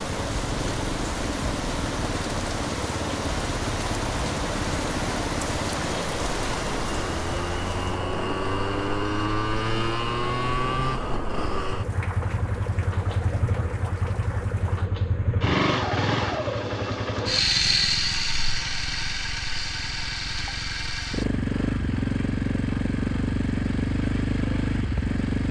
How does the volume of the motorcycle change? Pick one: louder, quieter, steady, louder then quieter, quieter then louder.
louder.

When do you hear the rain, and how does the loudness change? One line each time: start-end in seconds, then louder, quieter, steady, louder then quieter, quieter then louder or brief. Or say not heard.
0.0-14.9 quieter.